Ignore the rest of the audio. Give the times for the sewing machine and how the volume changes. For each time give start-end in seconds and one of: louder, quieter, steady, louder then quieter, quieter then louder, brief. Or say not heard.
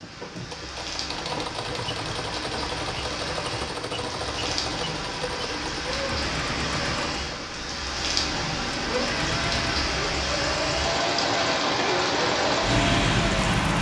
0.0-13.7 steady.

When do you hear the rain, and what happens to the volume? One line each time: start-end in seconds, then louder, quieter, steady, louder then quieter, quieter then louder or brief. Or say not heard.
0.0-13.7 louder.